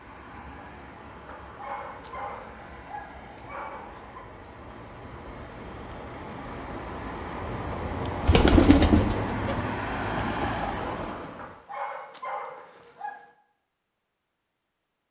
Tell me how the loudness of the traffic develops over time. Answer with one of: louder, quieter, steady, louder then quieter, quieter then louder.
louder.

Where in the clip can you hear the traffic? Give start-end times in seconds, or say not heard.
0.0-11.6.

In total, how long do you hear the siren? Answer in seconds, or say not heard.
not heard.